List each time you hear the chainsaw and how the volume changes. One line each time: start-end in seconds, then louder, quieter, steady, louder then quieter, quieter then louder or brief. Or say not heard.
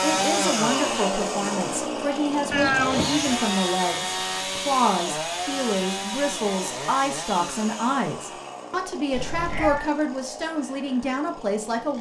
0.0-11.9 quieter.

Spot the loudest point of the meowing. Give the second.
3 s.